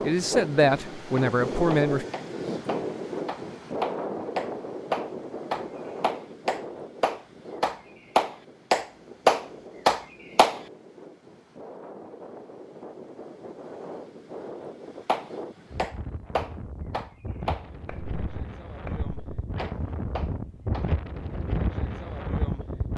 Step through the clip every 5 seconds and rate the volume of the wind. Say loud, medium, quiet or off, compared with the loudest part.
loud, medium, medium, medium, loud.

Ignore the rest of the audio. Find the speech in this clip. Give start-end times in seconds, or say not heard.
0.0-2.0.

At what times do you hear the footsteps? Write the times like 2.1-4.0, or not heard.
not heard.